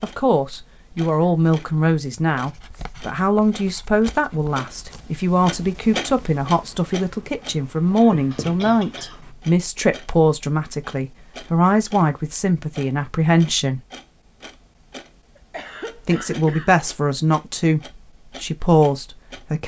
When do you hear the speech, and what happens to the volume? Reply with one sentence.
You can hear the speech from 0.0 to 13.8 s, at a steady volume; briefly from 16.1 to 17.8 s; and briefly from 18.4 to 19.6 s.